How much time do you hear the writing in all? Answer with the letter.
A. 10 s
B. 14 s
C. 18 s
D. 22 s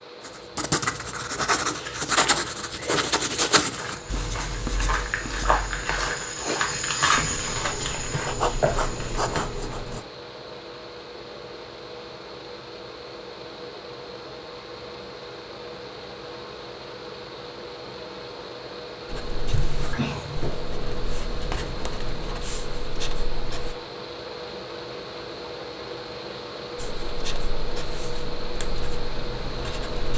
C.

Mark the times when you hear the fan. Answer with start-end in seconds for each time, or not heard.
0.0-30.1.